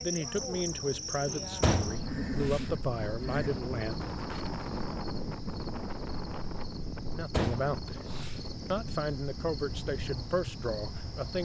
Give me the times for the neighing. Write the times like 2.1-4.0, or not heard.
1.9-3.5.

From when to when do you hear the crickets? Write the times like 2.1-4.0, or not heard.
0.0-11.4.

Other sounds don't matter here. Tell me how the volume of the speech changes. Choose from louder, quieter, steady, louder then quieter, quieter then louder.
steady.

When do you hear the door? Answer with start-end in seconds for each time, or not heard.
1.6-2.6, 7.3-8.3.